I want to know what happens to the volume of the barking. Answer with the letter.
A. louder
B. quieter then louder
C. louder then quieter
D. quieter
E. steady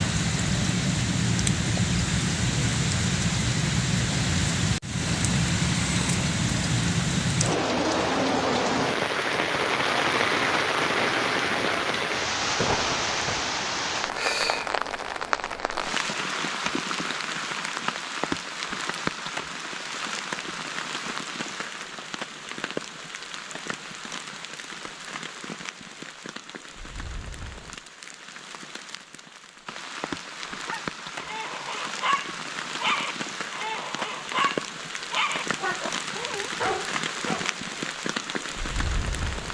E.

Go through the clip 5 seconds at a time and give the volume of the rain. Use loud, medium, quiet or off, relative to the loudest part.
loud, loud, loud, medium, medium, quiet, medium, medium.